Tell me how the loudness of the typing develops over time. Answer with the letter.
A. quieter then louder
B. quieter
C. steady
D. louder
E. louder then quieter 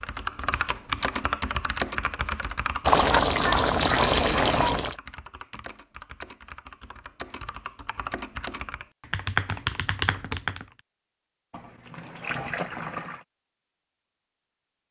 A.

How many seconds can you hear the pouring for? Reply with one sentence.
You can hear the pouring for 4 seconds altogether.